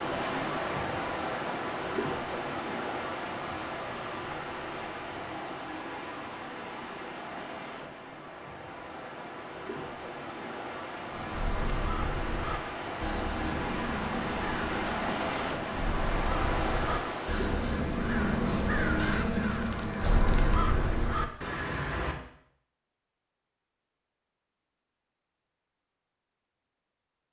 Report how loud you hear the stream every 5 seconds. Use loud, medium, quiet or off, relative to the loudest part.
loud, medium, loud, loud, off, off.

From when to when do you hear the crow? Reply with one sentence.
You can hear the crow from 11.1 to 22.1 s.